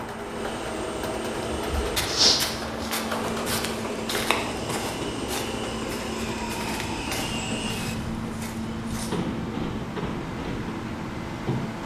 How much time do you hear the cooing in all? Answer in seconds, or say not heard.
not heard.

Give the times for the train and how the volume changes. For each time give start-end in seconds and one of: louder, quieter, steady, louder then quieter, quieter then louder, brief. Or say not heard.
0.0-11.8 steady.